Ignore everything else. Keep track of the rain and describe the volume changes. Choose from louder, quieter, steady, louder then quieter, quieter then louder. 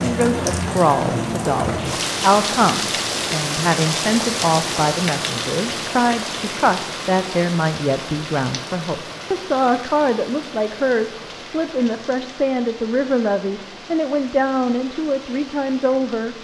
quieter.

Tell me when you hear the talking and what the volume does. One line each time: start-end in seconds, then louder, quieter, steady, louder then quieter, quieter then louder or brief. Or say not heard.
0.0-16.3 steady.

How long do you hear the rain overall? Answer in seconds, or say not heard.
16 s.